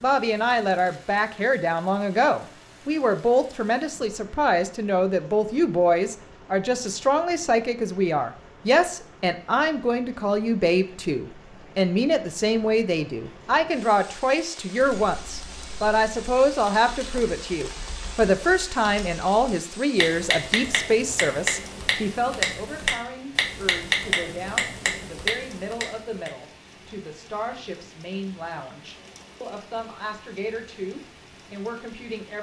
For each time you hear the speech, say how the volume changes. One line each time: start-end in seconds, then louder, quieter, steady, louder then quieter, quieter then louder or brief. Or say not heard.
0.0-32.3 quieter.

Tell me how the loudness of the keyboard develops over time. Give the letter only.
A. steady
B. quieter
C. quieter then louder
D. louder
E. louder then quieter
D.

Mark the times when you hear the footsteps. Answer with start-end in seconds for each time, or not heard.
not heard.